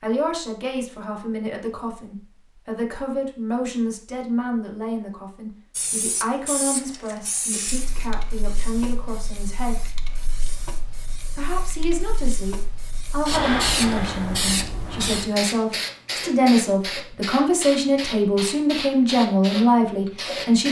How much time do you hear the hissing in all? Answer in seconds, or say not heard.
15 s.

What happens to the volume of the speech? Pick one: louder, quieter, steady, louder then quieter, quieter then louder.
louder.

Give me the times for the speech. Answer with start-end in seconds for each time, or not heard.
0.0-9.8, 11.3-20.6.